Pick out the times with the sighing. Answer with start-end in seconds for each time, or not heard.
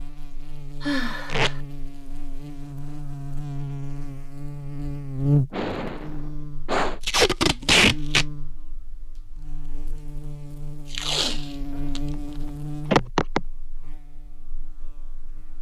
0.8-1.6, 5.5-7.0, 12.9-13.4.